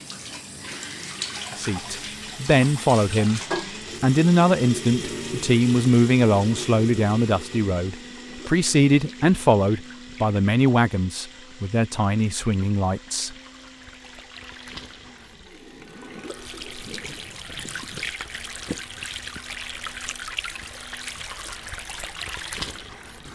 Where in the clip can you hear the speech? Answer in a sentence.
You can hear the speech from 1.6 to 3.4 s and from 4.0 to 13.3 s.